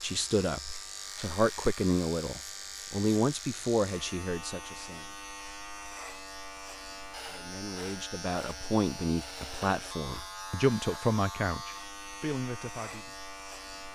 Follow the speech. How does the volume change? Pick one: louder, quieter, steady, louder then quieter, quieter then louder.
quieter then louder.